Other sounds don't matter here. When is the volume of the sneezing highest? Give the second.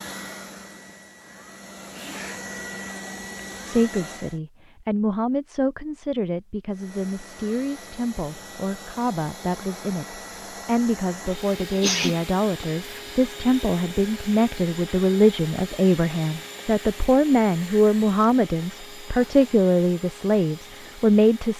12 s.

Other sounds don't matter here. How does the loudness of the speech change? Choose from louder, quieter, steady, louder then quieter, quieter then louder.
louder.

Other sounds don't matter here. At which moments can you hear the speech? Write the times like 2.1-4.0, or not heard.
3.6-21.5.